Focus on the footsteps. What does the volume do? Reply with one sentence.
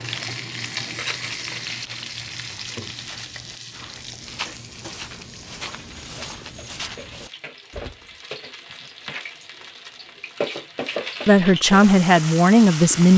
The loudness of the footsteps goes up.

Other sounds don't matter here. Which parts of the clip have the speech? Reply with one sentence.
You can hear the speech from 11.2 to 13.1 s.